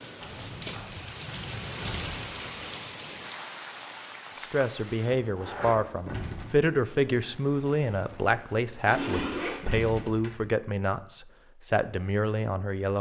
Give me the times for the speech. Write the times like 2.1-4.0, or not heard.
4.4-12.9.